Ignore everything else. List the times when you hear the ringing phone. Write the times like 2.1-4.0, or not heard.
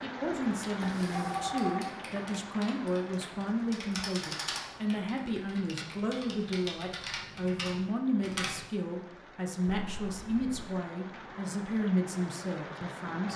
0.8-1.9, 9.7-10.7.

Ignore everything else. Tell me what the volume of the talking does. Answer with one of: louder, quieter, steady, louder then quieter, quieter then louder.
steady.